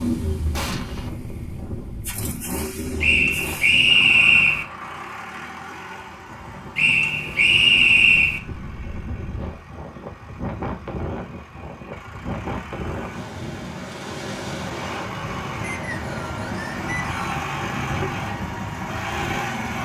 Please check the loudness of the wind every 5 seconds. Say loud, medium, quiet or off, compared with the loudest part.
medium, medium, loud, loud.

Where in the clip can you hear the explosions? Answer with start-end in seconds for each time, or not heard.
0.5-1.1.